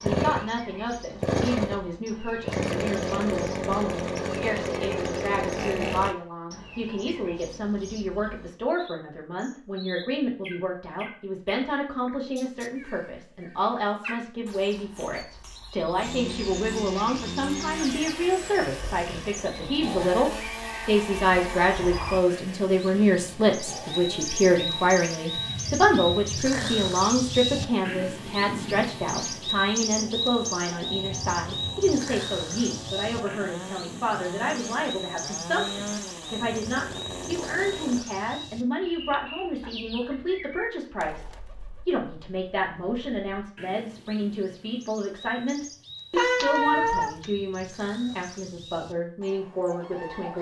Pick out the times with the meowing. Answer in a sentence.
You can hear the meowing from 46.1 to 47.2 s.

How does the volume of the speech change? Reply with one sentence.
The volume of the speech goes up, then down.